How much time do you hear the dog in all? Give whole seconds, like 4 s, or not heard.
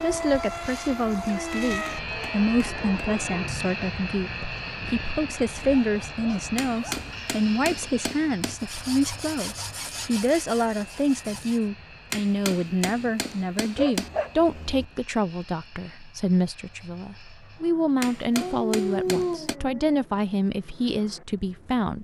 6 s.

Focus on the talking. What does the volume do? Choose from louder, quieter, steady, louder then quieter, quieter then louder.
steady.